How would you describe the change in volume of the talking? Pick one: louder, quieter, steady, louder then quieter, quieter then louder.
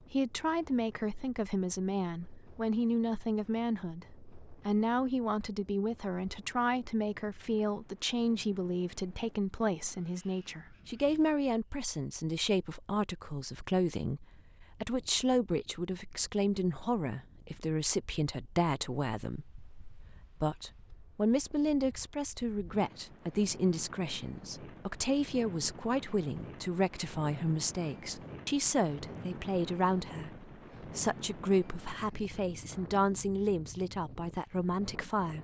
steady.